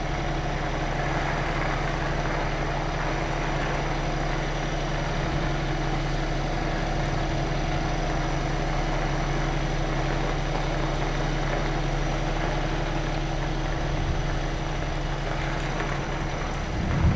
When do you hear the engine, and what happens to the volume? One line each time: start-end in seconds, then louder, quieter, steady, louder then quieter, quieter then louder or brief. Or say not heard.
0.0-17.1 steady.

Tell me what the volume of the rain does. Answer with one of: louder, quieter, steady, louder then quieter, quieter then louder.
steady.